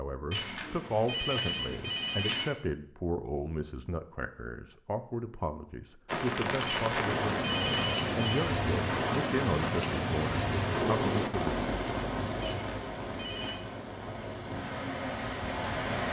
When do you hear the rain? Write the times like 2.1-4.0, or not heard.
6.0-16.0.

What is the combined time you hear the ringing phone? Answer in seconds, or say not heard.
5 s.